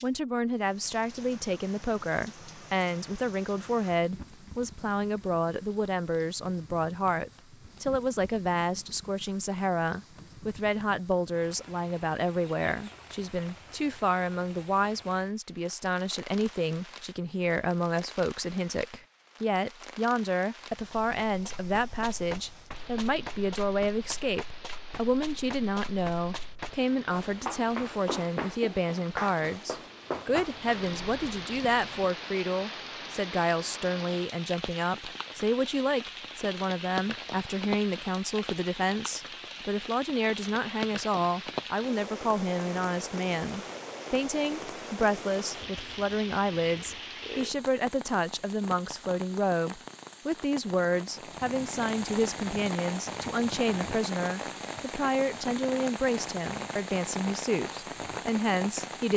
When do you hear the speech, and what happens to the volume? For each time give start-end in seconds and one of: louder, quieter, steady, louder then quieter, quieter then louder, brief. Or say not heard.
0.0-59.1 steady.